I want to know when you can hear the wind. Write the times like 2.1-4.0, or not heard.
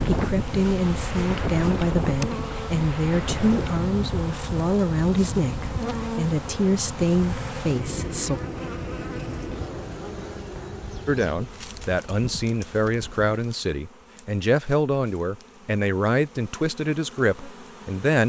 0.0-13.3.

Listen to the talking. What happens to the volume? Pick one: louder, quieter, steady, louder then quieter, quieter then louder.
steady.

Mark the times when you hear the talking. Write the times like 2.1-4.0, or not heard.
0.1-8.4, 11.1-18.2.